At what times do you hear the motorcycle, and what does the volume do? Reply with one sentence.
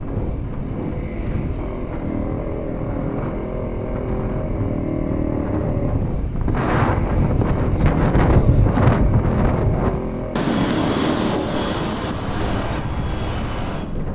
You can hear the motorcycle from 0.0 to 14.1 s, at a steady volume.